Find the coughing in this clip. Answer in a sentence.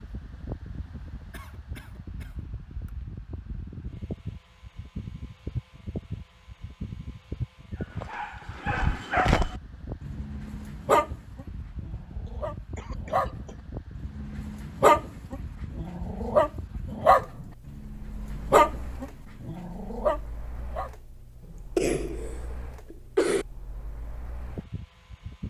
The coughing can be heard from 1.3 to 2.9 s, from 12.2 to 13.7 s and from 21.4 to 23.4 s.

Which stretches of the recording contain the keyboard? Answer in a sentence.
You can't hear the keyboard here.